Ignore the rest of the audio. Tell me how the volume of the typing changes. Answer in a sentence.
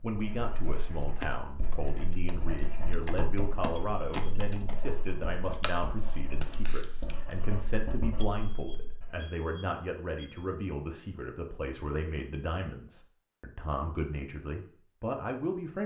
The loudness of the typing goes up, then down.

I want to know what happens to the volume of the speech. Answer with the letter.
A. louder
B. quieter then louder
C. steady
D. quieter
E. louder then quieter
C.